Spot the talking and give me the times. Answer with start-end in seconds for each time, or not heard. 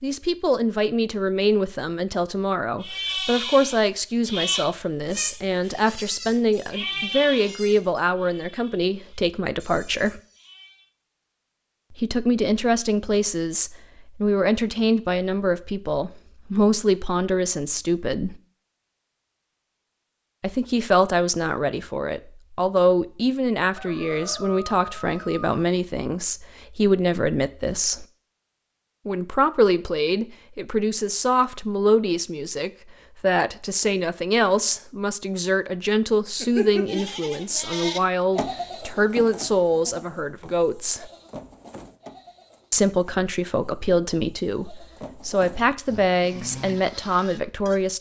0.0-10.2, 11.9-18.4, 20.4-28.1, 29.1-41.1, 42.7-47.9.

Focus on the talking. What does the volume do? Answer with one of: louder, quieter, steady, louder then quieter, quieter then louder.
steady.